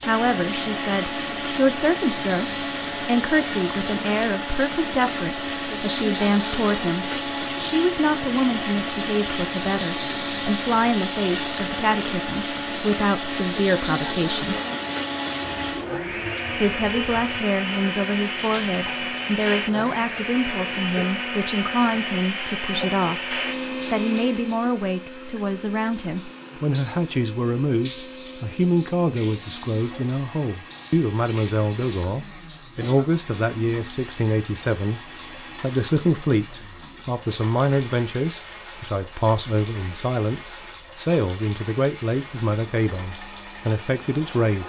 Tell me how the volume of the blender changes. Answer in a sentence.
The volume of the blender goes down.